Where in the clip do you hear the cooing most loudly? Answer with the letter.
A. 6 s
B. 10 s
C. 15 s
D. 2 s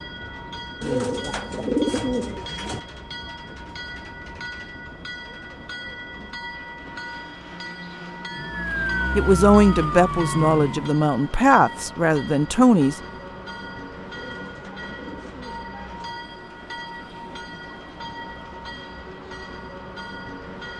D.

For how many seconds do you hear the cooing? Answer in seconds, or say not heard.
4 s.